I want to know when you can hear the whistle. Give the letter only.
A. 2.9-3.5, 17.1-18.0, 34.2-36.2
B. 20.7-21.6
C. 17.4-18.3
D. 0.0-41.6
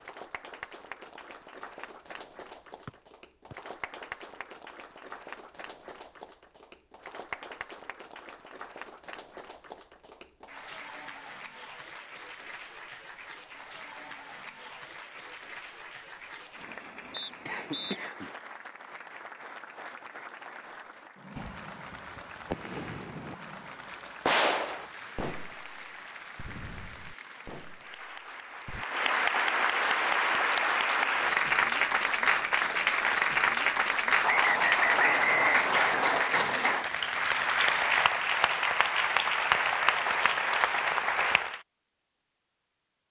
A.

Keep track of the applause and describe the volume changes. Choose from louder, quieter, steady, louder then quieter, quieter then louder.
louder.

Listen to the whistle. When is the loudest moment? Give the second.
35 s.